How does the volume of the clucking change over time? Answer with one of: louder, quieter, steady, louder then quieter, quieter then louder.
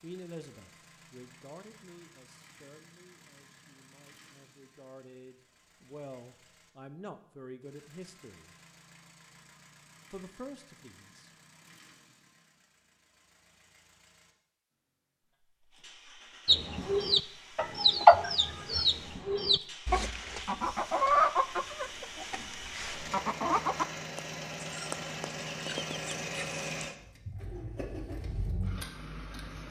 quieter.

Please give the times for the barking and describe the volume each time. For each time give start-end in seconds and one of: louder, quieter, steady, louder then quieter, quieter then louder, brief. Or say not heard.
not heard.